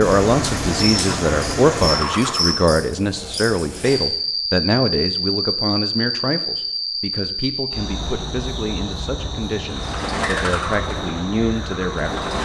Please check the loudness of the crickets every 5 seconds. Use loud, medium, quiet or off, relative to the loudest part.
loud, loud, medium.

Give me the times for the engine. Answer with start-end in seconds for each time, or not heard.
0.0-2.7, 9.7-12.4.